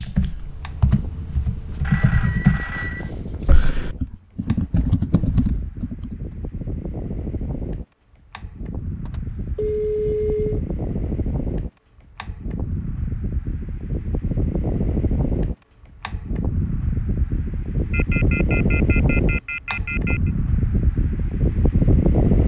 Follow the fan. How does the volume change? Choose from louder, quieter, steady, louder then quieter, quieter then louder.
louder.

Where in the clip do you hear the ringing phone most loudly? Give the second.
10 s.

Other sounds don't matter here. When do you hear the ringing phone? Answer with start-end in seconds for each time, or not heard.
1.8-3.1, 9.1-10.6, 17.9-20.3.